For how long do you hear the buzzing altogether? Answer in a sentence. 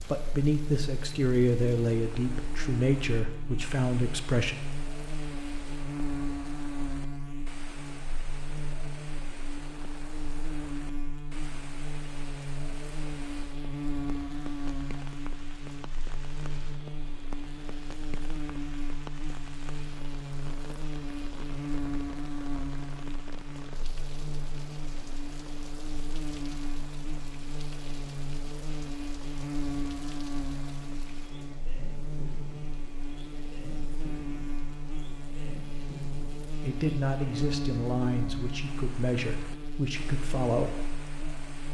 The buzzing can be heard for 42 seconds in total.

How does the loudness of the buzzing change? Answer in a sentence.
The loudness of the buzzing stays about the same.